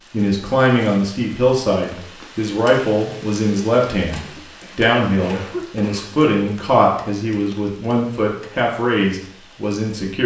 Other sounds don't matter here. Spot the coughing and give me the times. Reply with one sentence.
You can hear the coughing from 4.2 to 6.2 s.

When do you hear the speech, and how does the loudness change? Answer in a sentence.
You can hear the speech from 0.1 to 10.2 s, at a steady volume.